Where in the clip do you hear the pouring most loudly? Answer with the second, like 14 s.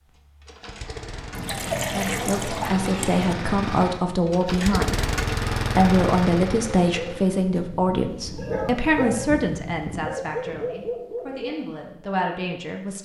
2 s.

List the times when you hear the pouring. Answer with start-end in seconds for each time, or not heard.
1.3-3.4.